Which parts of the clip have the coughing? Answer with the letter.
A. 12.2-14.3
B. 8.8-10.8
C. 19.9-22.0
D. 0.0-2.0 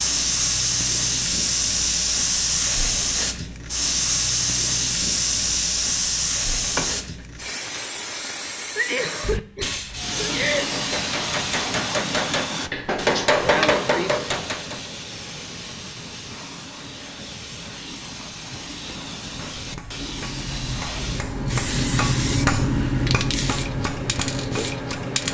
B.